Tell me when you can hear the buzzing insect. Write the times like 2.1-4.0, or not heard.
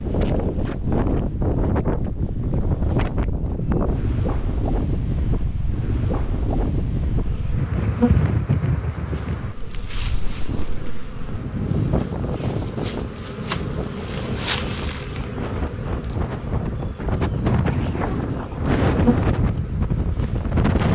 7.2-20.8.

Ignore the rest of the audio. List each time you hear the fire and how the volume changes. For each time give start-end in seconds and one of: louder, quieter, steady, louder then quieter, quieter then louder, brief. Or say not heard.
not heard.